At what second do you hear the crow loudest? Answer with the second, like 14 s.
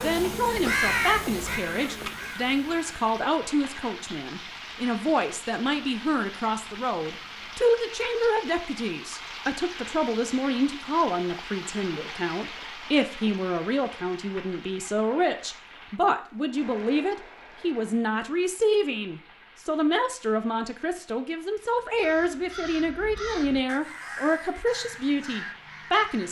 1 s.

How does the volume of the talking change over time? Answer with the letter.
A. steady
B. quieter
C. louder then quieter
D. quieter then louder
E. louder
A.